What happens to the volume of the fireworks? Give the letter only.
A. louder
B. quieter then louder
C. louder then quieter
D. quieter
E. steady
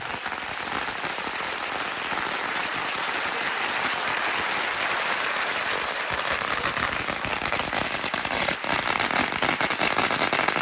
A.